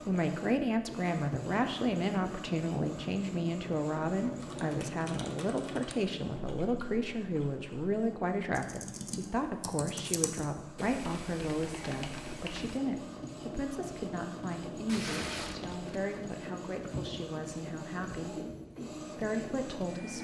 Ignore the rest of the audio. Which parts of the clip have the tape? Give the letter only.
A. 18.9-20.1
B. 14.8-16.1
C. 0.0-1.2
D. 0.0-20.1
B.